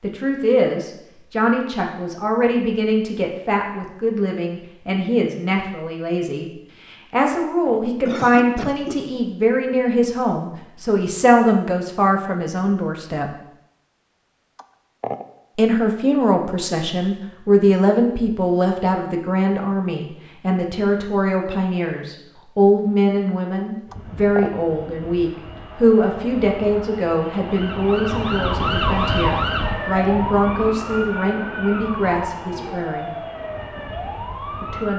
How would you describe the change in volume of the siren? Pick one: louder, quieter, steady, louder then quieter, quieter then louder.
quieter.